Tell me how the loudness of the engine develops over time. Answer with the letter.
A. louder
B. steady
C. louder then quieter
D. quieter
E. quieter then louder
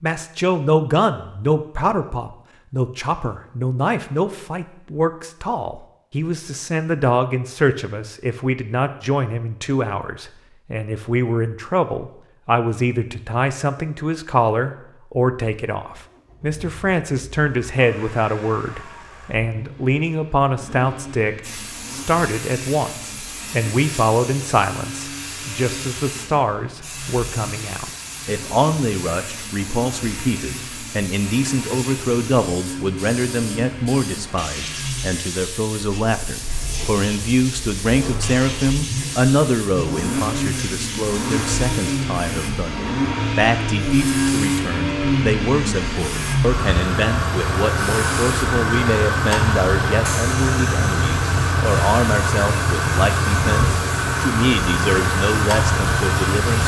A.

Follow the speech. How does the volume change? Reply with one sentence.
The loudness of the speech stays about the same.